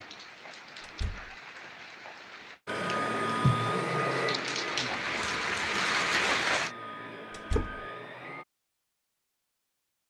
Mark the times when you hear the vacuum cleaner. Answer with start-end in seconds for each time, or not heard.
2.6-8.4.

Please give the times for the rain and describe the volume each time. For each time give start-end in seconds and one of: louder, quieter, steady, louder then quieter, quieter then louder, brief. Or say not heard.
0.0-6.7 louder.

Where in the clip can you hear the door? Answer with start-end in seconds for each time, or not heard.
0.8-1.4, 7.3-7.8.